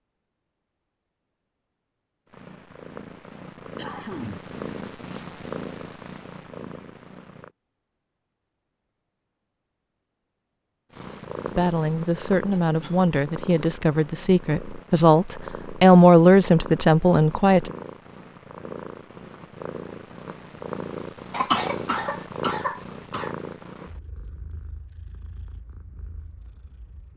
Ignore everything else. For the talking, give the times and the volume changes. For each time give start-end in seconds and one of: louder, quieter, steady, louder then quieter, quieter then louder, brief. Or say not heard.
11.5-17.8 louder.